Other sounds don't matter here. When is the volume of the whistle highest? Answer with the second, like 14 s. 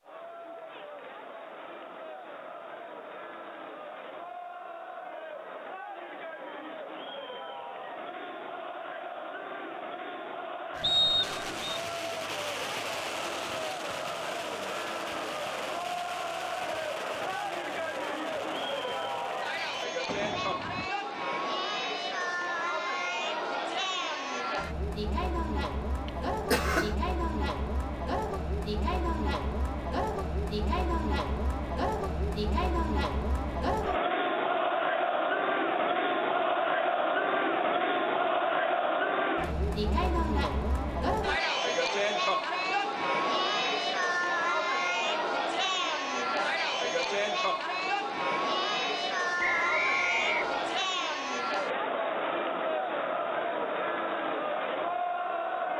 11 s.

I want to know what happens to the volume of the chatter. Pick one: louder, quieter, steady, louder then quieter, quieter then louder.
louder.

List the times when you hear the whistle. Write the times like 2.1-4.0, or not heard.
10.8-11.8, 49.4-50.9.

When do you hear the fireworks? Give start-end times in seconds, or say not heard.
10.8-20.9.